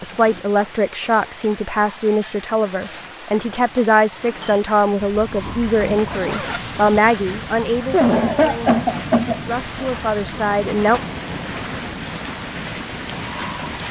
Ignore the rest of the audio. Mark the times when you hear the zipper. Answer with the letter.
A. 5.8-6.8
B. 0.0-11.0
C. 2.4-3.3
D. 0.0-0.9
A.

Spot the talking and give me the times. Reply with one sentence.
You can hear the talking from 0.0 to 11.0 s.